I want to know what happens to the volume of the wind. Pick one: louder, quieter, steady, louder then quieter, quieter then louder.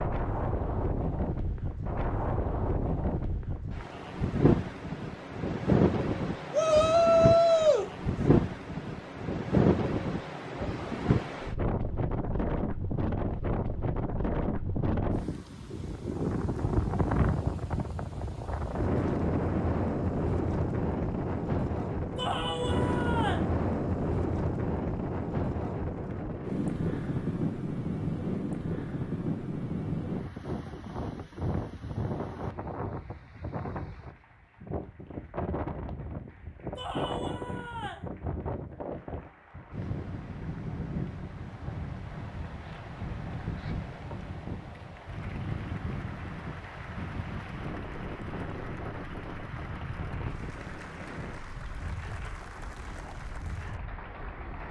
quieter.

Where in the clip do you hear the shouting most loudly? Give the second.
7 s.